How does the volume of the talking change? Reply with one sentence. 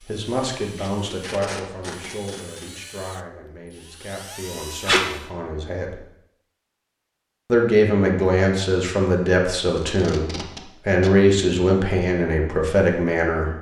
The volume of the talking goes down, then up.